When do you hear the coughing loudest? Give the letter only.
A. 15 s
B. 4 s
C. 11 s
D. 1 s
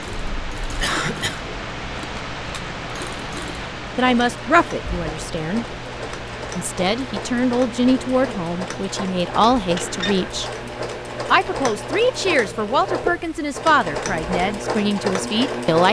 D.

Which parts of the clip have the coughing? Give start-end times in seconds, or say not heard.
0.8-1.4, 9.8-10.3.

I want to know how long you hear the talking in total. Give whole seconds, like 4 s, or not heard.
10 s.